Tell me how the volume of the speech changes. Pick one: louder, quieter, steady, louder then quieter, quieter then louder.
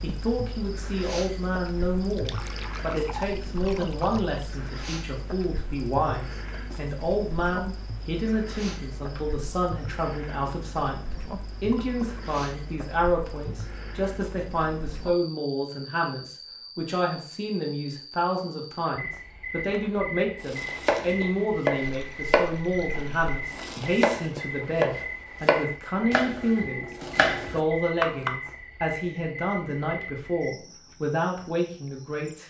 steady.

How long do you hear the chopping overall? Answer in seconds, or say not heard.
8 s.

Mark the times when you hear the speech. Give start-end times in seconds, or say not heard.
0.0-32.4.